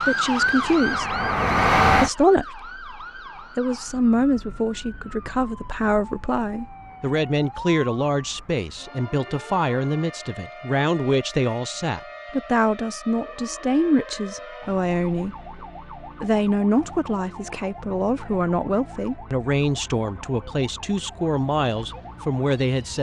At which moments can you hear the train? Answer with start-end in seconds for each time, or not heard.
0.2-2.1.